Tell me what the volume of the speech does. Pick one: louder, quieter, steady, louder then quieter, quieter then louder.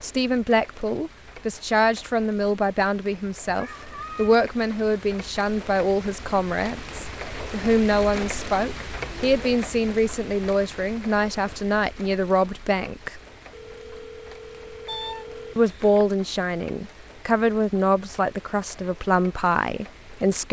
steady.